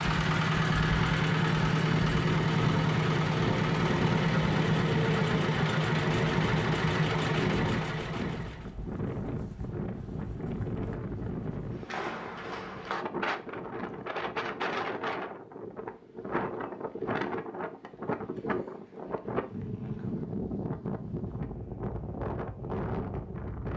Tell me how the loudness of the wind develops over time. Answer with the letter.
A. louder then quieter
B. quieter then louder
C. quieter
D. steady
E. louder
D.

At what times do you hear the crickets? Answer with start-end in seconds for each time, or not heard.
not heard.